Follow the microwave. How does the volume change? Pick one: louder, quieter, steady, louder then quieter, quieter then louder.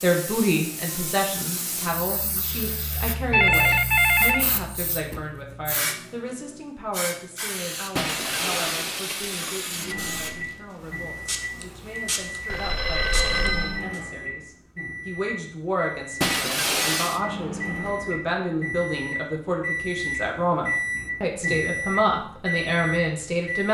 louder.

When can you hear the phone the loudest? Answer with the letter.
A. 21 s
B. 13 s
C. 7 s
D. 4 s
D.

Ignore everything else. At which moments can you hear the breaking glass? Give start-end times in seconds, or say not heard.
8.0-9.9, 16.2-17.2.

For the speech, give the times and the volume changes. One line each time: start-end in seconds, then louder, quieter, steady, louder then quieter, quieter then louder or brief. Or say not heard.
0.0-23.6 quieter then louder.